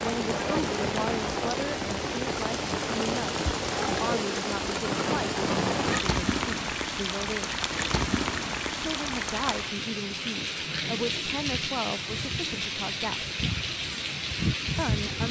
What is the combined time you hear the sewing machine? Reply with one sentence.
You can't hear the sewing machine here.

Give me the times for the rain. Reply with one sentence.
The rain can be heard from 0.0 to 15.2 s.